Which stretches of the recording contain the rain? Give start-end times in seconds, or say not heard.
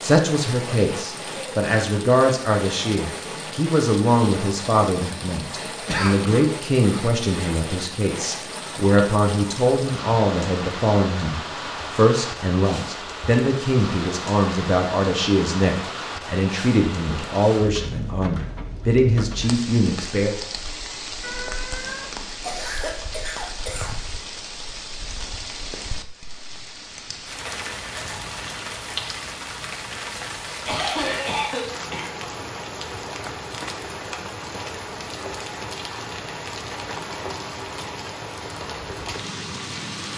0.0-40.1.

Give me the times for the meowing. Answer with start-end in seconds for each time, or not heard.
21.2-22.6.